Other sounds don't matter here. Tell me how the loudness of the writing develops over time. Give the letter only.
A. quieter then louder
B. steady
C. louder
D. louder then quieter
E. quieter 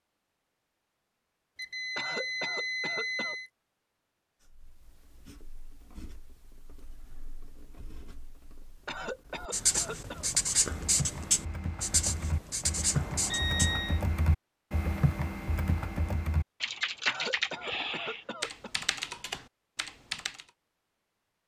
C.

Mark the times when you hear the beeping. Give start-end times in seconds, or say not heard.
1.6-3.5, 12.9-14.0.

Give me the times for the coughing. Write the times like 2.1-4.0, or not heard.
1.9-3.4, 8.8-10.3, 17.1-18.7.